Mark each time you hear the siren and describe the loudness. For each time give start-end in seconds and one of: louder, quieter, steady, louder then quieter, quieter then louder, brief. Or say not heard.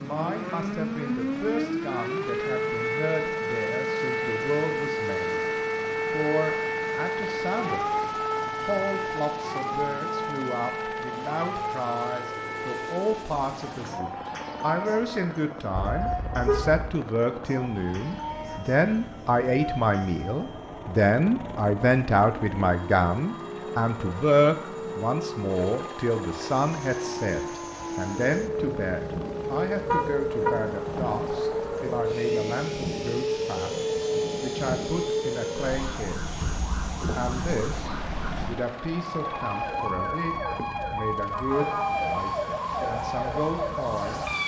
0.0-44.4 quieter then louder.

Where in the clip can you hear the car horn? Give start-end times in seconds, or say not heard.
15.8-16.9, 29.9-30.6.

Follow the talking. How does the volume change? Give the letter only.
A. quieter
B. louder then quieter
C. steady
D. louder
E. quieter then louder
B.